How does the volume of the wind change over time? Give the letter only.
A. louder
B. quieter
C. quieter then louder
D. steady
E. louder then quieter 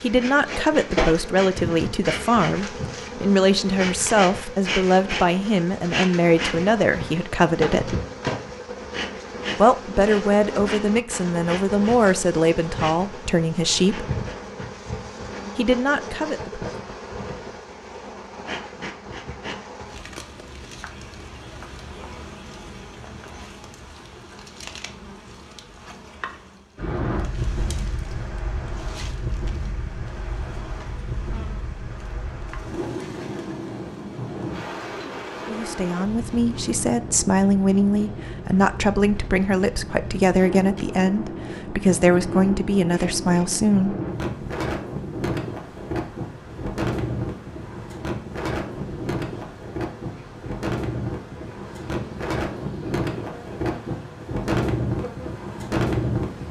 A.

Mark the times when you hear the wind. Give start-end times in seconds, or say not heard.
26.8-56.4.